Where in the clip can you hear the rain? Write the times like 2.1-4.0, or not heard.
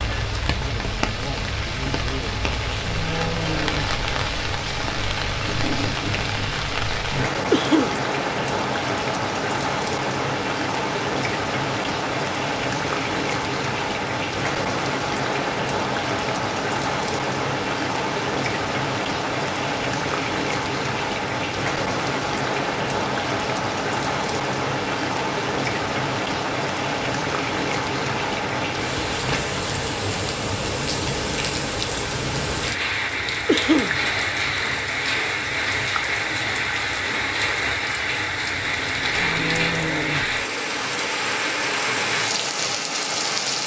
0.0-43.6.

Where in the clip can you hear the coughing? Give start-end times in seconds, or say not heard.
7.5-8.0, 33.5-34.0.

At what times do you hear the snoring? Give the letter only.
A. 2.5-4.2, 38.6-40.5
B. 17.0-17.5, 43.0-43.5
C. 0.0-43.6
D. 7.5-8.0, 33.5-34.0
A.